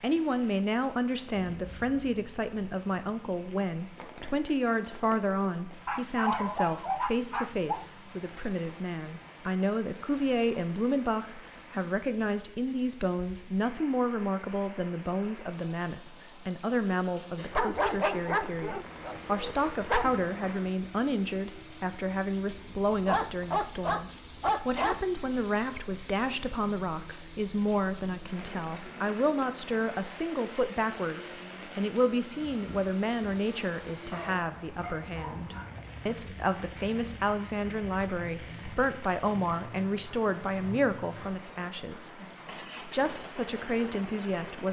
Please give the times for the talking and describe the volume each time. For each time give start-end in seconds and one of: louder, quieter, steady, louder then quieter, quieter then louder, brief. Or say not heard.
0.0-42.2 steady
42.8-44.6 brief.